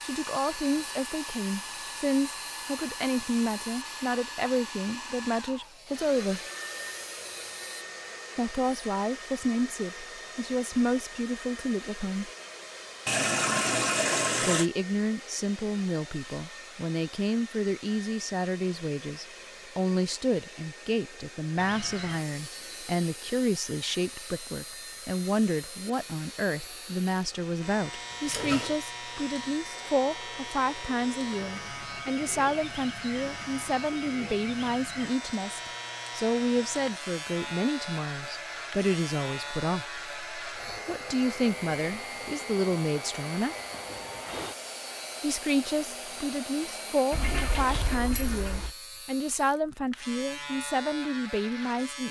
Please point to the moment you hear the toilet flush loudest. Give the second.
14 s.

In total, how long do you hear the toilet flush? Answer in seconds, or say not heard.
4 s.